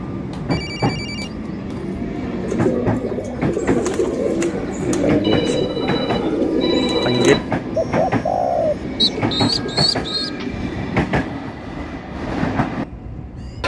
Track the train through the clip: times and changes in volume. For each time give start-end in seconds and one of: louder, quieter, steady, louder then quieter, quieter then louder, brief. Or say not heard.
0.0-13.6 steady.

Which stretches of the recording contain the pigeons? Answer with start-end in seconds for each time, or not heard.
2.3-10.3.